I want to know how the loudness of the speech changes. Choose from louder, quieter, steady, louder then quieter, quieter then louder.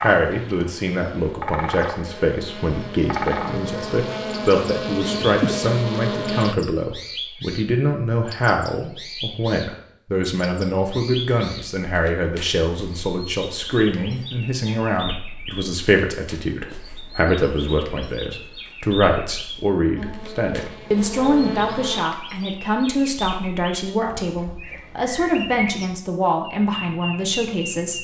steady.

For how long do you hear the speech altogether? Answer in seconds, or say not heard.
28 s.